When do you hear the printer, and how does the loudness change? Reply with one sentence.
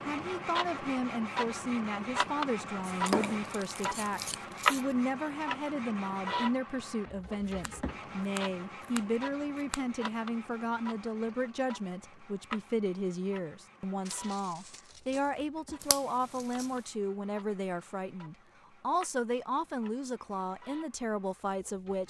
The printer can be heard from 0.0 to 22.0 s, getting quieter.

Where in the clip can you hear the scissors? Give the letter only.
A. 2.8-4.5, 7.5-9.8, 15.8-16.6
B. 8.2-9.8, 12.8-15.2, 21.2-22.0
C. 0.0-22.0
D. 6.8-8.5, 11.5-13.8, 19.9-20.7
A.